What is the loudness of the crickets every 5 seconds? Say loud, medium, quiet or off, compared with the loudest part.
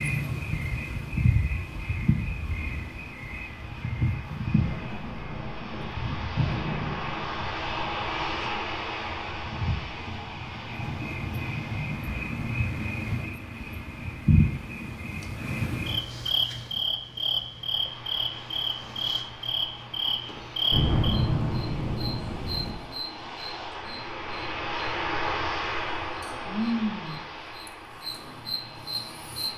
loud, medium, loud, loud, loud, loud.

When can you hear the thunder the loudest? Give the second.
21 s.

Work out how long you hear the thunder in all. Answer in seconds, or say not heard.
6 s.